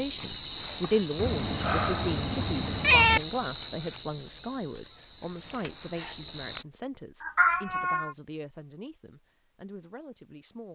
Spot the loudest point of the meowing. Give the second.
3 s.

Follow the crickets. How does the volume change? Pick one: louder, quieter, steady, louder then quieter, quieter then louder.
quieter.